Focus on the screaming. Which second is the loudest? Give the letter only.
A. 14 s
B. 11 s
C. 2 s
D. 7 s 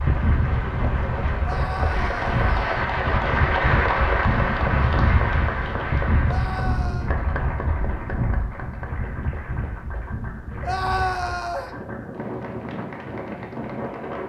B.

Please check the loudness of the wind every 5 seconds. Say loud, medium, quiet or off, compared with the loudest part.
loud, loud, medium.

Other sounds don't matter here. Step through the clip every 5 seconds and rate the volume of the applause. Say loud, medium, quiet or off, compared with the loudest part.
loud, medium, quiet.